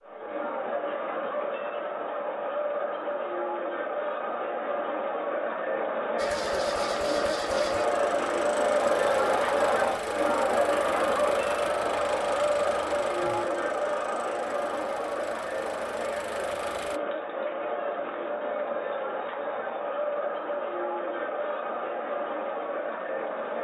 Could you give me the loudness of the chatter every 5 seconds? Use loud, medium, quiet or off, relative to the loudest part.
medium, loud, loud, medium, medium.